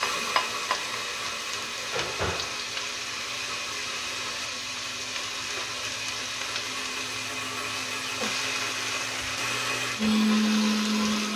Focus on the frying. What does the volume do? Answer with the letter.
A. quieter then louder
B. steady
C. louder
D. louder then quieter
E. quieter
B.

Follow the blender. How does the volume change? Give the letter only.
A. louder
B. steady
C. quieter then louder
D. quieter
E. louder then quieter
A.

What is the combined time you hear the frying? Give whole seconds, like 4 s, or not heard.
11 s.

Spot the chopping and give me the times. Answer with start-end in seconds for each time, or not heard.
not heard.